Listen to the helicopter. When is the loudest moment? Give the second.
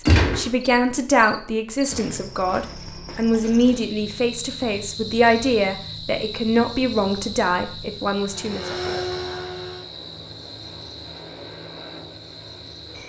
9 s.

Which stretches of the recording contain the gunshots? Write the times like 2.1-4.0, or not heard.
0.1-0.5.